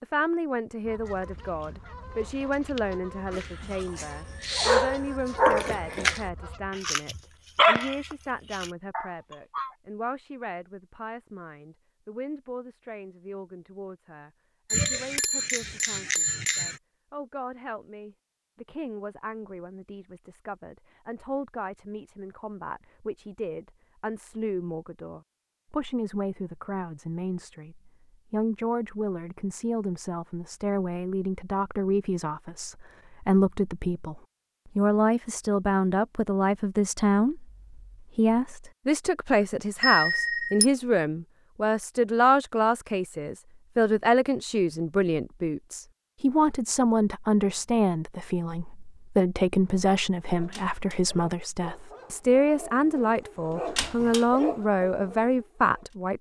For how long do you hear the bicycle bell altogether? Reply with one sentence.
You can hear the bicycle bell for 3 seconds altogether.